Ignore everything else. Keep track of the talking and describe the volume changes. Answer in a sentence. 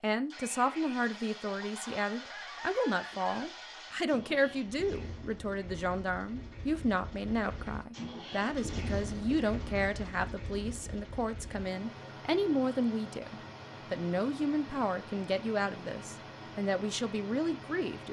The volume of the talking stays about the same.